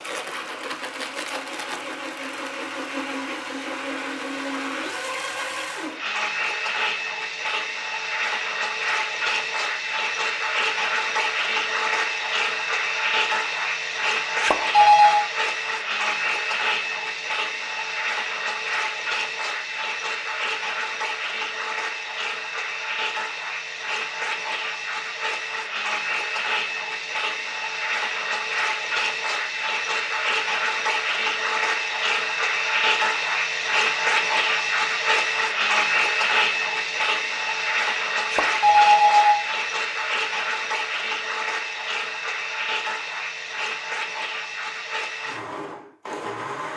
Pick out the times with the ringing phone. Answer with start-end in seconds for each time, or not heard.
14.4-15.2, 38.3-39.4.